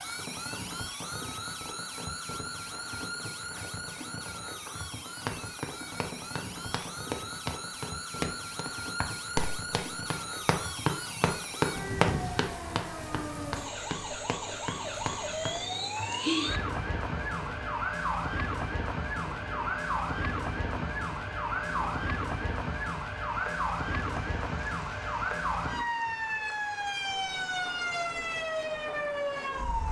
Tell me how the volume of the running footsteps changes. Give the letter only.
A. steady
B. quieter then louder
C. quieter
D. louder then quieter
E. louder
D.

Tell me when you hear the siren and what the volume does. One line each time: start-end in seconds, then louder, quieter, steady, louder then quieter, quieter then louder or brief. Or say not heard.
0.0-29.8 louder.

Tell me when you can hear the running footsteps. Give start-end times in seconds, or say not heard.
5.2-15.6.